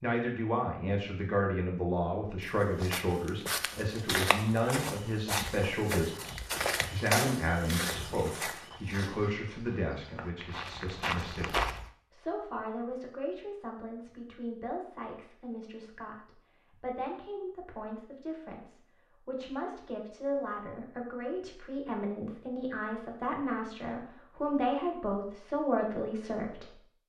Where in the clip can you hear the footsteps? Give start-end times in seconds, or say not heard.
2.4-11.9.